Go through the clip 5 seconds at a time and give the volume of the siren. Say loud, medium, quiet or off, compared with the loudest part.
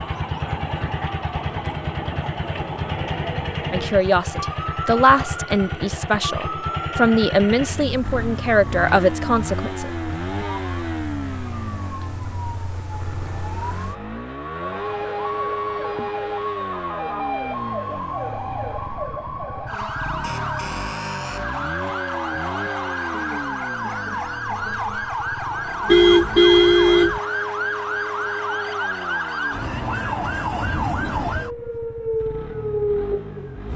medium, medium, medium, loud, loud, loud, loud.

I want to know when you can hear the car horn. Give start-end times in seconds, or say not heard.
25.9-27.2.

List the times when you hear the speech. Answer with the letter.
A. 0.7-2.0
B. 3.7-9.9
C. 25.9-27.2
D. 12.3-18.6
B.